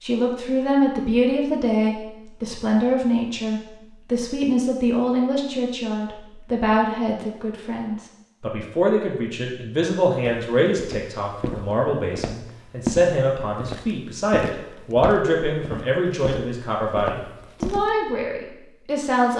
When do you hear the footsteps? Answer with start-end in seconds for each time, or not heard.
10.2-17.9.